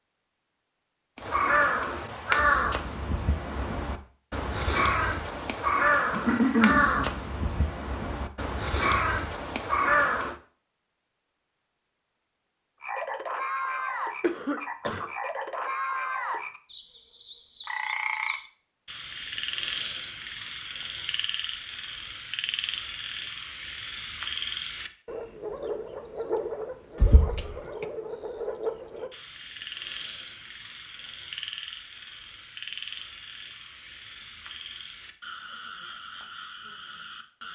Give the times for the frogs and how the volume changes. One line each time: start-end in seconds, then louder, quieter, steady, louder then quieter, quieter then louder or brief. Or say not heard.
12.8-37.5 quieter.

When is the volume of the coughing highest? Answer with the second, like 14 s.
7 s.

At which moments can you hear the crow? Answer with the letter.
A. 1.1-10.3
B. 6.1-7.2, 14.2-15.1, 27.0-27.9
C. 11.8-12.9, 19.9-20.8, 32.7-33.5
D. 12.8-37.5
A.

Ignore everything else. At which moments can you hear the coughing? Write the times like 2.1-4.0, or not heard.
6.1-7.2, 14.2-15.1, 27.0-27.9.